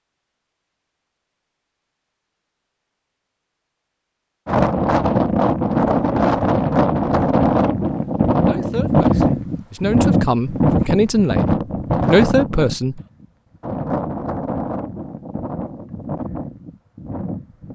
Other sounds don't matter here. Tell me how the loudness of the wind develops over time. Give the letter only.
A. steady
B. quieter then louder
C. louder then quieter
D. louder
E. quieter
E.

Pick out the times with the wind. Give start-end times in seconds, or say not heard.
4.5-17.7.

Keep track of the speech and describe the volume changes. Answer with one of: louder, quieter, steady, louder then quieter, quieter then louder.
louder.